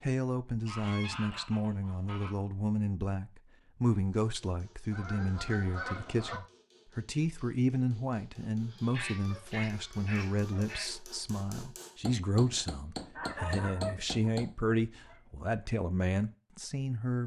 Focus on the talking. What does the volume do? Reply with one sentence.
The loudness of the talking stays about the same.